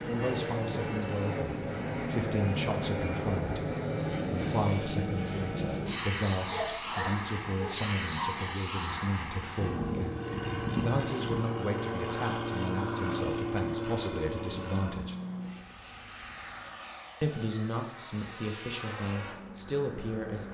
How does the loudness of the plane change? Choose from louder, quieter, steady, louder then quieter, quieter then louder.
quieter.